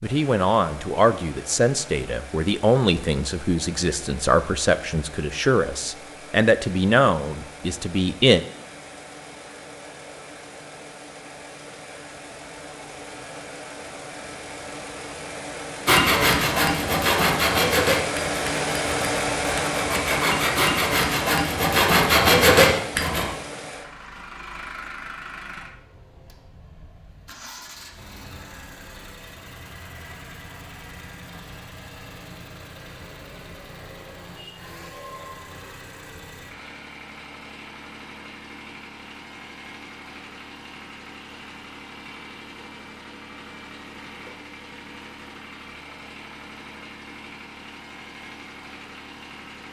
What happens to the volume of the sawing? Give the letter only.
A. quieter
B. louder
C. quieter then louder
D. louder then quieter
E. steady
C.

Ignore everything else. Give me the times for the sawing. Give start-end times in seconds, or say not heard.
15.8-23.2.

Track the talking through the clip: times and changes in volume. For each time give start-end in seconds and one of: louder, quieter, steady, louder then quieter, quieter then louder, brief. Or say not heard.
0.0-8.4 steady.